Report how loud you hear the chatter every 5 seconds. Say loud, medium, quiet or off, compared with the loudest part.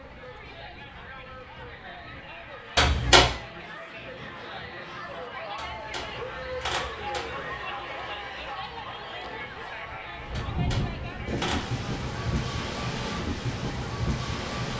medium, loud, medium.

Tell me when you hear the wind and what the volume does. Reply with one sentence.
You can hear the wind from 0.0 to 14.7 s, getting louder.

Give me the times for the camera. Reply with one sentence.
You can hear the camera from 2.8 to 3.4 s, from 5.5 to 7.5 s and from 10.3 to 11.7 s.